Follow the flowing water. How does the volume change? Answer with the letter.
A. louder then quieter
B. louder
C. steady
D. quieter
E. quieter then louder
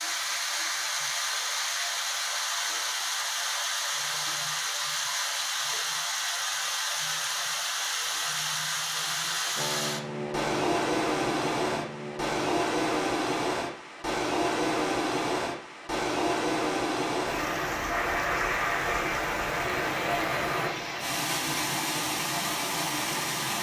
C.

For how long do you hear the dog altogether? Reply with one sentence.
The dog can't be heard in this clip.